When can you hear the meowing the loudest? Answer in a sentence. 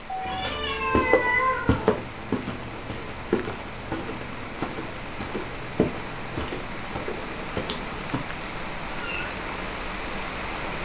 The volume of the meowing peaks at 1 second.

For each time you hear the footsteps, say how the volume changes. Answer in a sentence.
The footsteps can be heard from 0.2 to 8.2 s, getting quieter.